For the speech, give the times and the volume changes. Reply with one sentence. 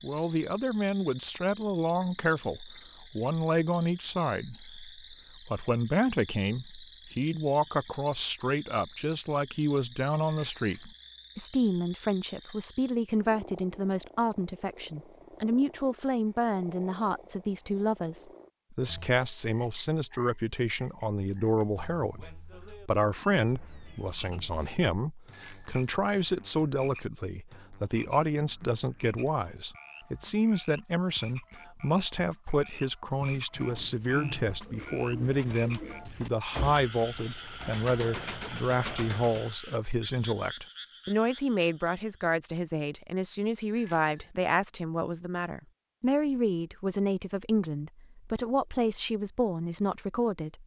The speech can be heard from 0.0 to 50.6 s, at a steady volume.